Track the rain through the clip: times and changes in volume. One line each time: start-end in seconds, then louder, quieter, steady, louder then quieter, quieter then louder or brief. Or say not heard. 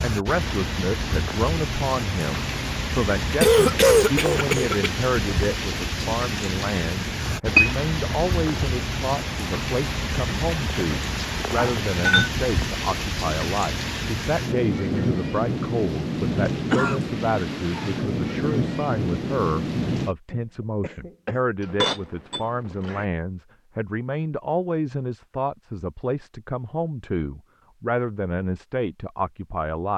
0.0-20.1 steady.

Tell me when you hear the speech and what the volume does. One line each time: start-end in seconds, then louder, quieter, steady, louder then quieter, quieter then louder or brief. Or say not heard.
0.0-29.9 steady.